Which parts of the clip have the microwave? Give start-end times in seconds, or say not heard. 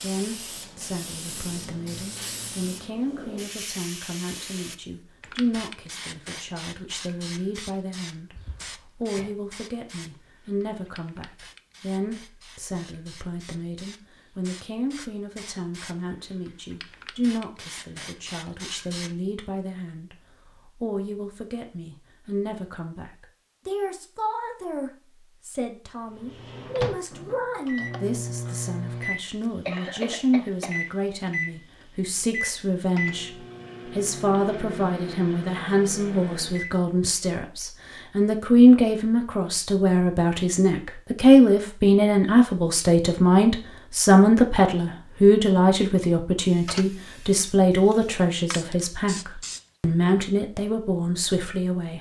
26.1-36.8.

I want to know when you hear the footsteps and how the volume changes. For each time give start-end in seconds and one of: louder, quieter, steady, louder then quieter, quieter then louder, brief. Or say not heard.
not heard.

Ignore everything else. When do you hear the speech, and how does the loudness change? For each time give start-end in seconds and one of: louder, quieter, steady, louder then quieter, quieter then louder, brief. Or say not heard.
0.0-51.9 louder.